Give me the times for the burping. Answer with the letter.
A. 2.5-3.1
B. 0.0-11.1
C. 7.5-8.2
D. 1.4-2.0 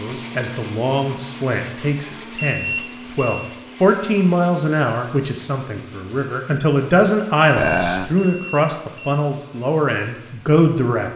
C.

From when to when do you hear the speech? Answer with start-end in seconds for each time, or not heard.
0.0-11.1.